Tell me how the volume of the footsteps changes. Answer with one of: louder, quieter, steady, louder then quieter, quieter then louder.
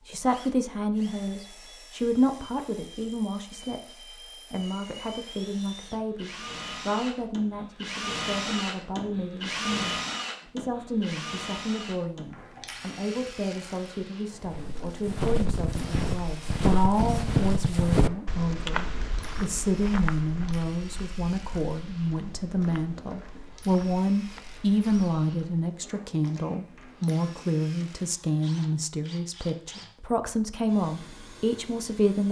quieter.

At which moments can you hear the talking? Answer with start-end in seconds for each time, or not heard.
0.1-32.2.